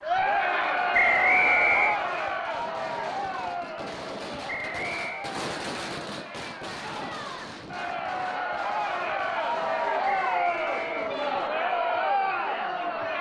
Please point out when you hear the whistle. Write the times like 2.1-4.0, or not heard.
0.9-2.0, 4.5-5.3, 10.1-11.1.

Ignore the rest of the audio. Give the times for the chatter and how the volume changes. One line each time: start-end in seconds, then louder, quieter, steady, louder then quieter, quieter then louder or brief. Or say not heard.
0.0-13.1 quieter then louder.